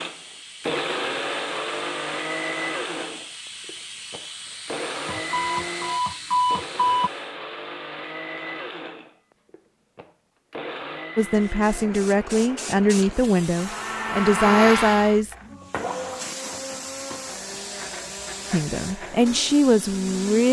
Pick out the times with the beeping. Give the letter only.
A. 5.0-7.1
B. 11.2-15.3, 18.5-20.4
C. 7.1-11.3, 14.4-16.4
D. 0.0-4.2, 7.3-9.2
A.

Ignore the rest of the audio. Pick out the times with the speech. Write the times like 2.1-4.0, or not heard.
11.2-15.3, 18.5-20.4.